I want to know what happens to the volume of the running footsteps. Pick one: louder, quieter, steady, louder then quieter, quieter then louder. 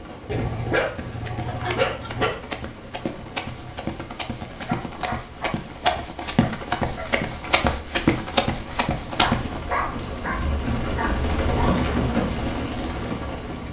louder.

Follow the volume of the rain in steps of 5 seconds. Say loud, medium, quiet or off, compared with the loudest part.
quiet, quiet, loud.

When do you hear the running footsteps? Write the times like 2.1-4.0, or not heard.
0.9-9.7.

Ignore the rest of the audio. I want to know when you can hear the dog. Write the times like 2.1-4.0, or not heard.
0.2-2.3, 4.7-7.0, 9.2-11.8.